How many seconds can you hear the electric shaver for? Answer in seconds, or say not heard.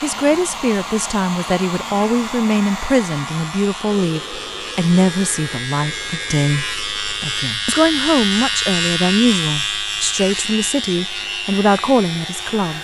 13 s.